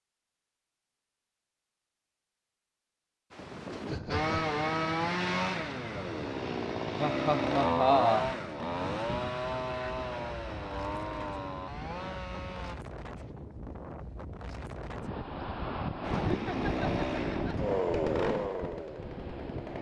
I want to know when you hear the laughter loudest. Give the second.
8 s.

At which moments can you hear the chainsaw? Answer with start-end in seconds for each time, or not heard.
4.1-12.8, 16.1-19.7.